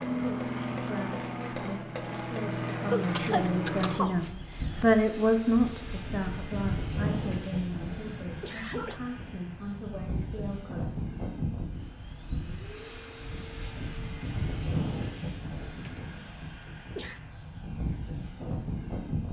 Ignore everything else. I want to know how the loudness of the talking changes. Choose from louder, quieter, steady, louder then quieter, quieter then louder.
louder then quieter.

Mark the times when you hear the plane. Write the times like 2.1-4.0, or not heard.
0.0-19.2.